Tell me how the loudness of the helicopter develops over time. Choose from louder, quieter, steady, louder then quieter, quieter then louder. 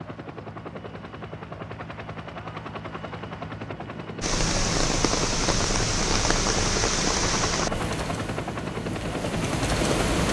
louder.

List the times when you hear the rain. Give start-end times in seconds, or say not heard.
4.2-10.2.